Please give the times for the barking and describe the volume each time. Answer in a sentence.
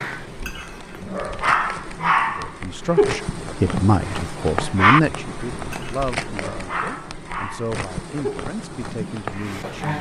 The barking can be heard from 0.0 to 9.9 s, getting quieter.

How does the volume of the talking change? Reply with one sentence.
The loudness of the talking goes down.